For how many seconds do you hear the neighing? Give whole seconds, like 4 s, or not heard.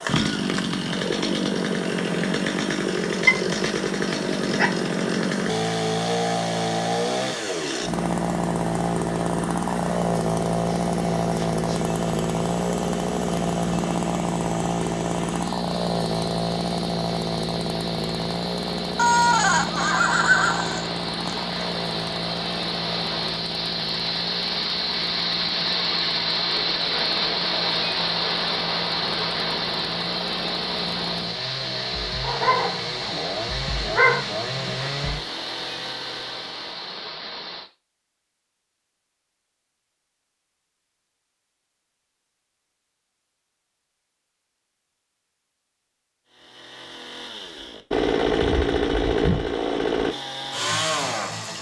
3 s.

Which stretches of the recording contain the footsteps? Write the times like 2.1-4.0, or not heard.
not heard.